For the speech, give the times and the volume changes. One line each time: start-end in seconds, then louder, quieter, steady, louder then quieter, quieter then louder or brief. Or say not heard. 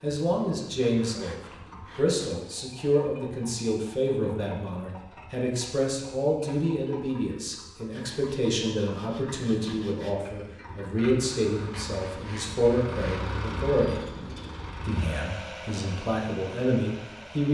0.0-14.1 steady
14.8-17.4 brief.